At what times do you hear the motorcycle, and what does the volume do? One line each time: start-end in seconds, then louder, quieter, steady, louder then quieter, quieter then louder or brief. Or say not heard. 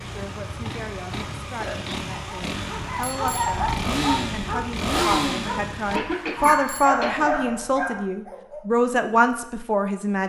0.0-6.0 louder.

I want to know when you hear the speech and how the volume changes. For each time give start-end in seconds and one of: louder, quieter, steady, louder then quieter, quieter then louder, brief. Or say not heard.
0.0-10.2 louder.